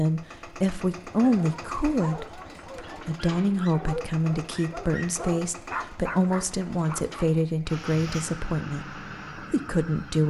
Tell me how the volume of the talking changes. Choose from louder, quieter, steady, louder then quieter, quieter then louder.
steady.